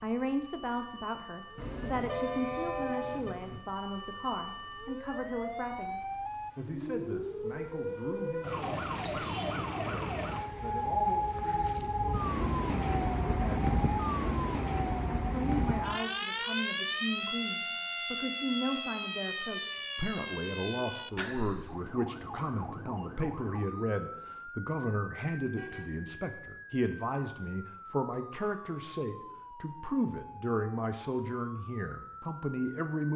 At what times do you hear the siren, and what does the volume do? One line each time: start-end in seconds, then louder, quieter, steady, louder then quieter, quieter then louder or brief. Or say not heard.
0.0-33.1 louder then quieter.